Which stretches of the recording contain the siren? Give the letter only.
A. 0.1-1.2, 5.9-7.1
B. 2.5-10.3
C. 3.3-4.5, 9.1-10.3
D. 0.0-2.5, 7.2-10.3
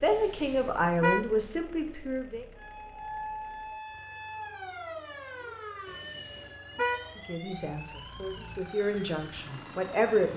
B.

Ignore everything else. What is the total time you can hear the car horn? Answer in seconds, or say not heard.
2 s.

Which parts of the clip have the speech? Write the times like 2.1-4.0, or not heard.
0.0-2.5, 7.2-10.3.